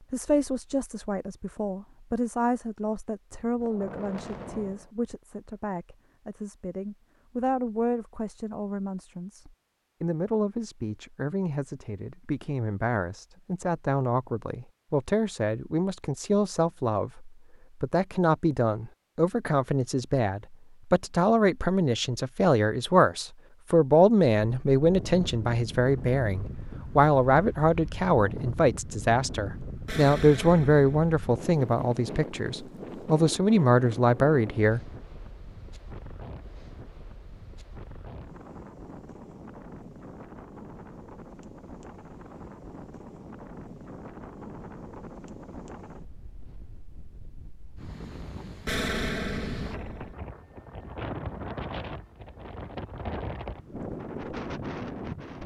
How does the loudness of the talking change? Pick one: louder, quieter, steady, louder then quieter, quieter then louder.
louder.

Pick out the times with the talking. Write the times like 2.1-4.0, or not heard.
0.1-34.8.